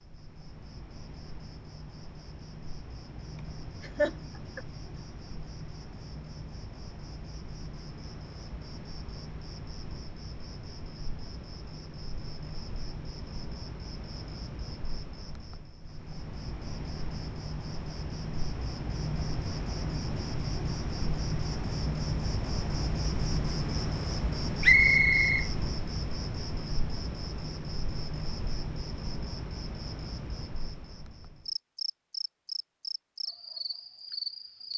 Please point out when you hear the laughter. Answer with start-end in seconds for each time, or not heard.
3.4-4.6.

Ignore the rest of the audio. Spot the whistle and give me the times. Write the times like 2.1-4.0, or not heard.
24.6-25.4.